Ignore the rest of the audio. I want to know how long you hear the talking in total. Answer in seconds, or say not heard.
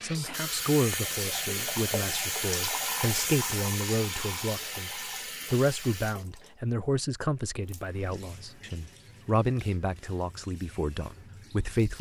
12 s.